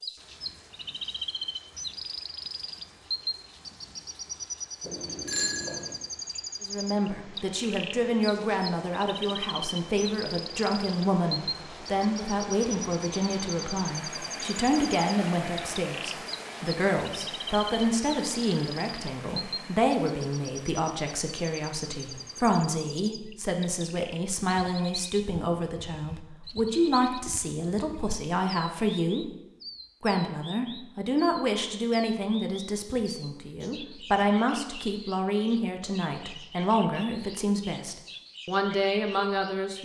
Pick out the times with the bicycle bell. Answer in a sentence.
You can hear the bicycle bell from 4.8 to 6.0 s.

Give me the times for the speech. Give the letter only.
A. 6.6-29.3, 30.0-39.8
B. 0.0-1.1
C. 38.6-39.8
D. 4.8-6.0
A.